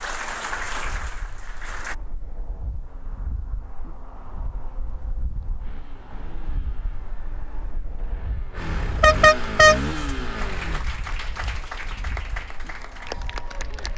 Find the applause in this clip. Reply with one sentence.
You can hear the applause from 0.0 to 1.9 s and from 10.3 to 13.9 s.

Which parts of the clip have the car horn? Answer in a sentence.
The car horn can be heard from 8.8 to 9.8 s.